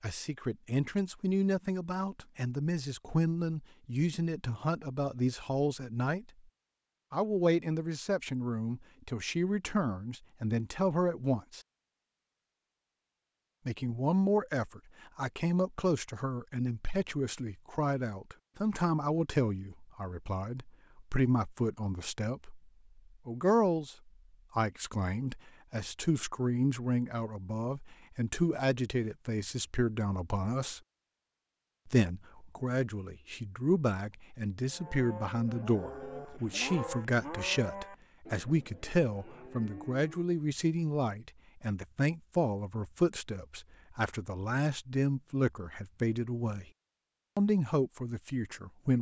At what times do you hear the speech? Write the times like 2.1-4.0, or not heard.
0.0-6.3, 7.1-11.6, 13.7-23.9, 24.6-30.8, 31.9-46.6, 47.4-48.9.